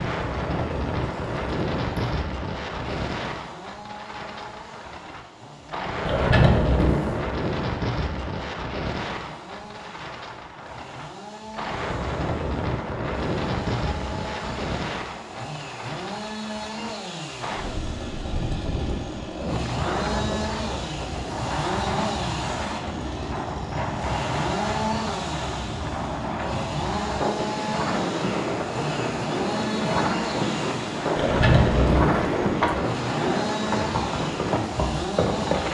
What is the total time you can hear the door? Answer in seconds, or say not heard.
3 s.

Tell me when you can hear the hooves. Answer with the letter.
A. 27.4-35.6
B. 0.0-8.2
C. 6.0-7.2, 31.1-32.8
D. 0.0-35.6
A.